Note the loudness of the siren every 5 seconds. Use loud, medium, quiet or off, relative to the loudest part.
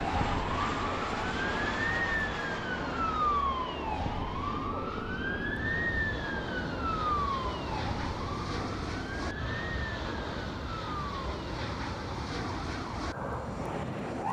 loud, loud, medium.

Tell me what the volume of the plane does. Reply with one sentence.
The loudness of the plane goes down, then up.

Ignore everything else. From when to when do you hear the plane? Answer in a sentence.
The plane can be heard from 0.0 to 14.2 s.